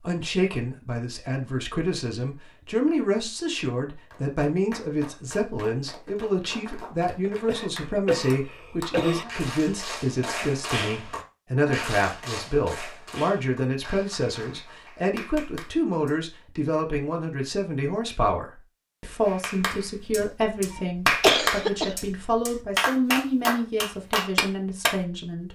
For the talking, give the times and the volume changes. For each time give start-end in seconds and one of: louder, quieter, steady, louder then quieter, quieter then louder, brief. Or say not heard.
0.0-25.5 steady.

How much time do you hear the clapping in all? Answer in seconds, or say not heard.
18 s.